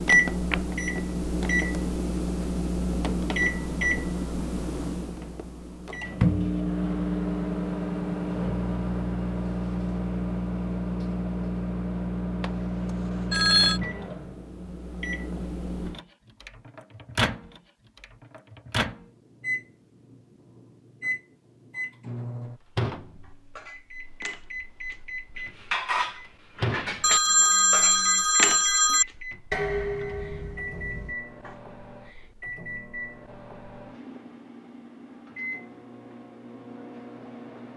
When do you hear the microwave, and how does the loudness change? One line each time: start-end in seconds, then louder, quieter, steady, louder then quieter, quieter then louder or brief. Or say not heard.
0.0-37.7 quieter.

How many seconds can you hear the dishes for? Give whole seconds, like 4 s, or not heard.
8 s.